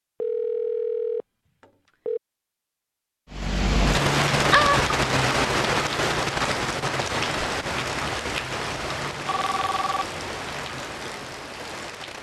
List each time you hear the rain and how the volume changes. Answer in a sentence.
You can hear the rain from 3.3 to 12.1 s, getting quieter.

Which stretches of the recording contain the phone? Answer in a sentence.
You can hear the phone from 0.2 to 2.2 s, from 4.5 to 4.9 s and from 9.2 to 10.2 s.